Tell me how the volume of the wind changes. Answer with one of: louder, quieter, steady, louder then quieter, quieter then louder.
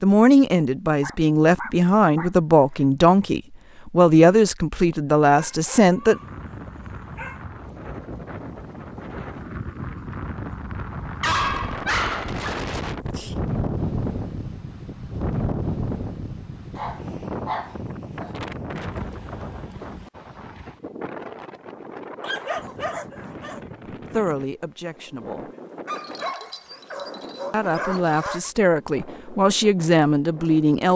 louder then quieter.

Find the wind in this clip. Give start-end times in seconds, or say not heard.
6.0-30.9.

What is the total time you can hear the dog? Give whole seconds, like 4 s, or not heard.
10 s.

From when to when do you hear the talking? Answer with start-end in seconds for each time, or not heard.
0.0-6.2, 24.1-25.5, 27.5-30.9.